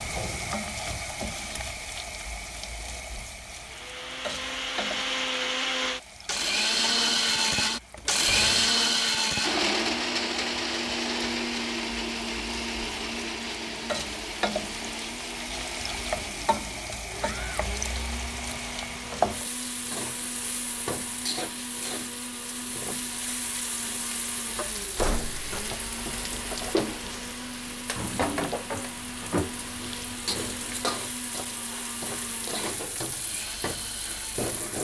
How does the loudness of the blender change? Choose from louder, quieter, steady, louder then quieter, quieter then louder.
quieter.